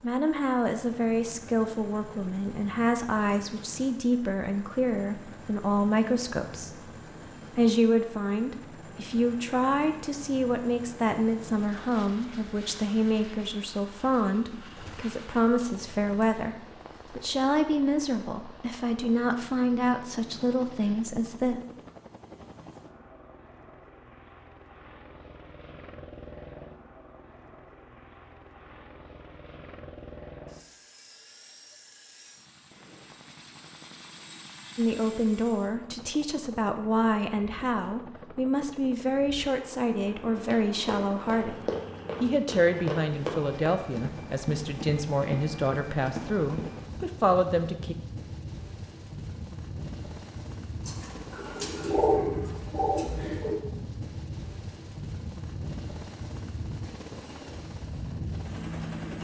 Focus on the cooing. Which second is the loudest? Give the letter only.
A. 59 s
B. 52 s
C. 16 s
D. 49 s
B.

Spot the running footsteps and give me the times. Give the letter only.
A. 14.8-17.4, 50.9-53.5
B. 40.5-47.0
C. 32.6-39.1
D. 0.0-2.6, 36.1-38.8
B.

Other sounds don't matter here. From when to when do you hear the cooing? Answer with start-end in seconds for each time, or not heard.
14.8-17.4, 50.9-53.5.